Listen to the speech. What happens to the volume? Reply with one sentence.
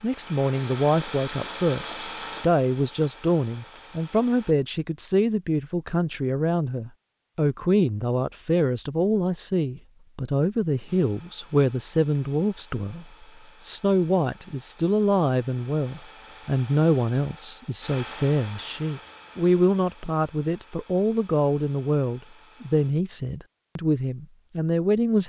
The loudness of the speech stays about the same.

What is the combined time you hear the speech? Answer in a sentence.
The speech can be heard for 25 seconds in total.